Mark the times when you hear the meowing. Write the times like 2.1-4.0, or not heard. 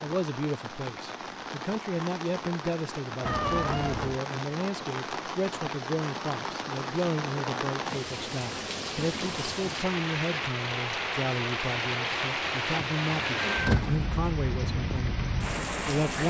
3.2-4.2, 12.9-14.1.